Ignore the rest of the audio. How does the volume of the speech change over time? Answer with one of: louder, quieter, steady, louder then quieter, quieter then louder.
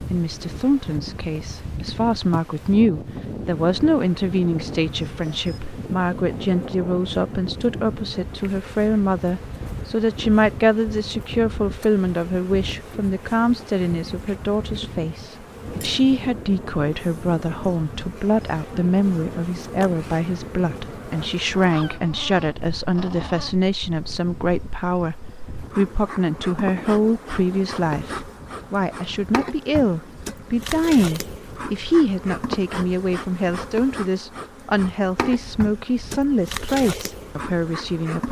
steady.